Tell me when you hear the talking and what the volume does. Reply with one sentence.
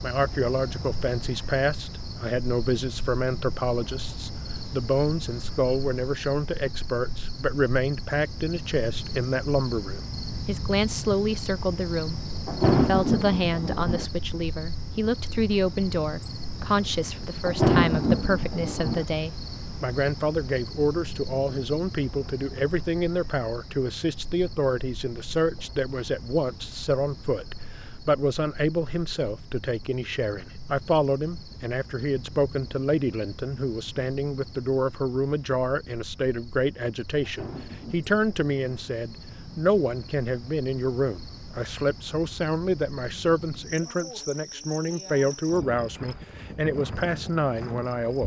The talking can be heard from 0.0 to 48.2 s, at a steady volume.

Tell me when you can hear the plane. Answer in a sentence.
The plane can't be heard in this clip.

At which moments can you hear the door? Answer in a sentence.
The door can't be heard in this clip.